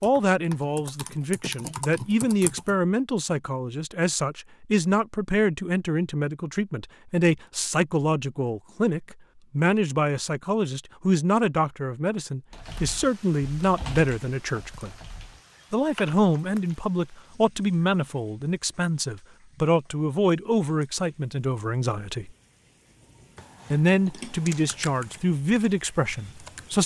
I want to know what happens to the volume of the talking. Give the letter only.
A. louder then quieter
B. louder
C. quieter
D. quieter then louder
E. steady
E.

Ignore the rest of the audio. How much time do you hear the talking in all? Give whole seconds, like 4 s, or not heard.
25 s.